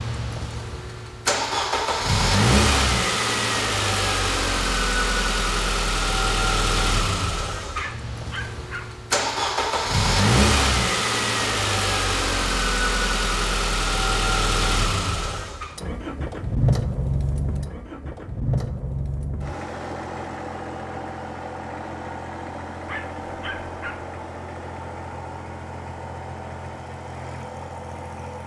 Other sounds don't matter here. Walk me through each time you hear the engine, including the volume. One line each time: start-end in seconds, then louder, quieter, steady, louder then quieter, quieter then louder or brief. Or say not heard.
0.0-28.4 quieter.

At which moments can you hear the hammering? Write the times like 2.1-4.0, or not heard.
not heard.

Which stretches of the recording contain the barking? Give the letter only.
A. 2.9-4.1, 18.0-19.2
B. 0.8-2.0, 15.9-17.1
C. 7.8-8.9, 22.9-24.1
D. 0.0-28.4
C.